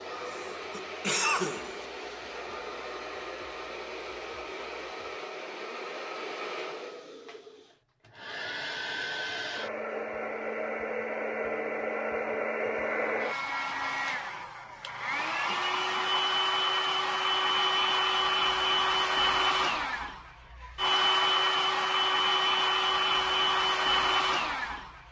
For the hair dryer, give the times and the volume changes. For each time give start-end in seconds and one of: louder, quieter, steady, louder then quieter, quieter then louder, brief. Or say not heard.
0.0-25.0 louder.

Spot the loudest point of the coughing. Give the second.
1 s.